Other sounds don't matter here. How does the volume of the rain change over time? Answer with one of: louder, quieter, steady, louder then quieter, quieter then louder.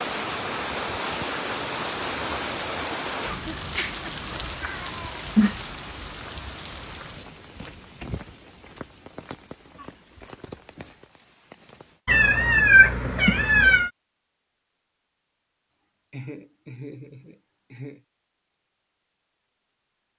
quieter.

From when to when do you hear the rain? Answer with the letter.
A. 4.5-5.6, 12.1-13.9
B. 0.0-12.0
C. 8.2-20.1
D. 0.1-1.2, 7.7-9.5
B.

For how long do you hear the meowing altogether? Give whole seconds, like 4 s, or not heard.
3 s.